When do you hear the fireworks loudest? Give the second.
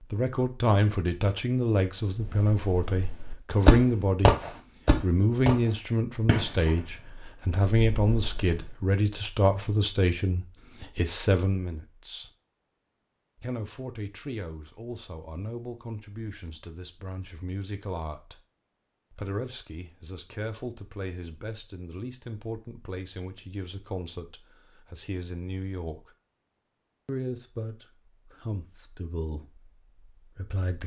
4 s.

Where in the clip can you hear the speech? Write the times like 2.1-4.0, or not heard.
0.0-4.3, 5.0-12.3, 13.4-18.4, 19.1-26.1, 27.1-30.8.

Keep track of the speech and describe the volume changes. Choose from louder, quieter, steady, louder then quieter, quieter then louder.
quieter.